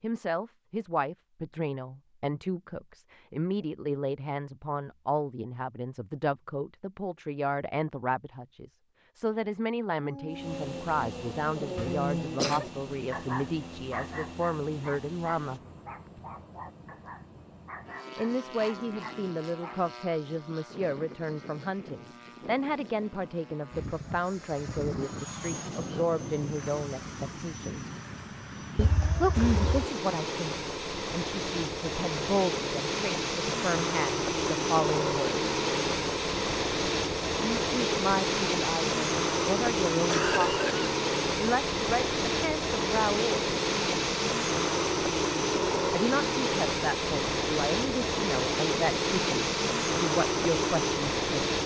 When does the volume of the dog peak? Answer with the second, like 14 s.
12 s.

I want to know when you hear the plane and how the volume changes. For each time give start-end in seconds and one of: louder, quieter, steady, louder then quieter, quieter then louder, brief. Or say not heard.
10.3-51.6 louder.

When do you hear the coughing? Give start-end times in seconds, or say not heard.
11.8-12.7, 28.8-29.9, 40.0-40.9.